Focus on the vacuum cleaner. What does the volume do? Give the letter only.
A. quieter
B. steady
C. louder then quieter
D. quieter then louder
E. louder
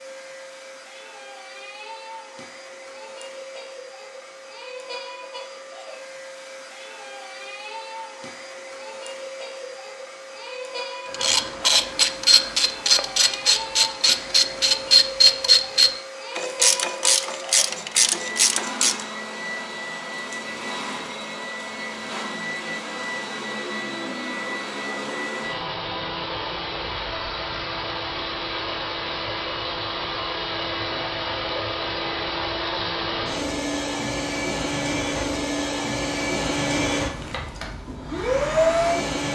E.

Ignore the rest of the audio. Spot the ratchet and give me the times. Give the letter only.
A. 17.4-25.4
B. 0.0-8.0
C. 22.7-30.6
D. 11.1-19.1
D.